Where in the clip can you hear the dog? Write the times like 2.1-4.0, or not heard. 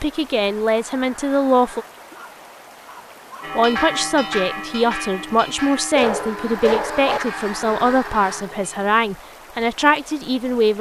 2.1-3.5, 6.0-7.2.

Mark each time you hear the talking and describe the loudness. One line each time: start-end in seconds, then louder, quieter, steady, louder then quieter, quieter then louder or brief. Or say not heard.
0.0-1.9 brief
3.5-10.7 steady.